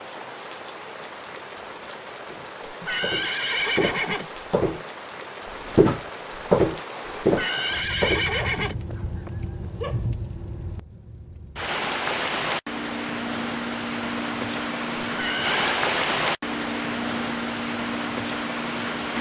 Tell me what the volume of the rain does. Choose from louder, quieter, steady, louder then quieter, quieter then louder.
louder.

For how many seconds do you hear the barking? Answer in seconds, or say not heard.
2 s.